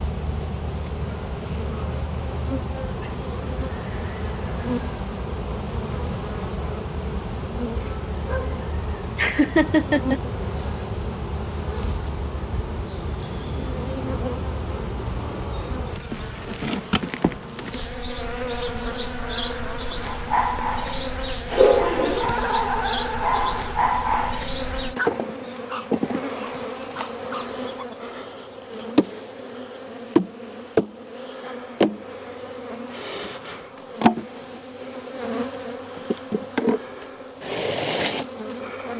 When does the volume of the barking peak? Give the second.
22 s.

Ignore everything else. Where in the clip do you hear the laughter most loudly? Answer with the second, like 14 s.
10 s.